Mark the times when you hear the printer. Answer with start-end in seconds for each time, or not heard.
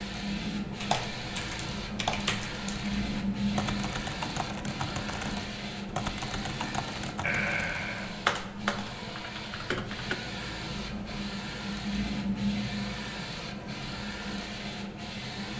0.0-15.5.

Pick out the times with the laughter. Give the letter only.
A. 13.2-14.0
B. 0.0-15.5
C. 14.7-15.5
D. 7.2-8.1
D.